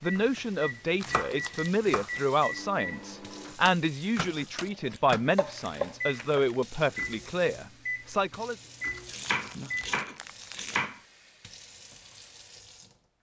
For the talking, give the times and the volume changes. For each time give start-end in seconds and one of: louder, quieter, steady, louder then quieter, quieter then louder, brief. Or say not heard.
0.0-8.6 steady.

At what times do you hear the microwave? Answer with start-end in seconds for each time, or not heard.
0.0-9.9.